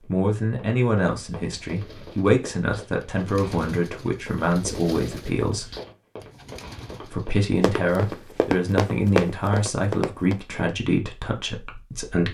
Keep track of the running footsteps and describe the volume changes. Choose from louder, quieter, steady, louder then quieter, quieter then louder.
louder.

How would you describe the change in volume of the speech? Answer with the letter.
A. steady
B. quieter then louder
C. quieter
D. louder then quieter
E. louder
A.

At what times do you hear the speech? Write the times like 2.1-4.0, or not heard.
0.0-5.7, 7.0-12.2.